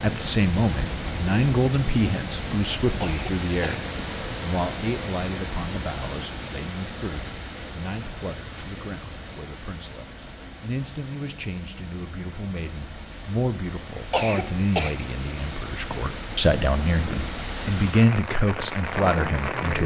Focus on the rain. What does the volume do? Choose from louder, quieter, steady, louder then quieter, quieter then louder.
quieter then louder.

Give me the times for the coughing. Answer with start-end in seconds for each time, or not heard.
3.0-3.8, 14.1-15.2.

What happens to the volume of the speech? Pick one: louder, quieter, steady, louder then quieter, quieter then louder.
quieter then louder.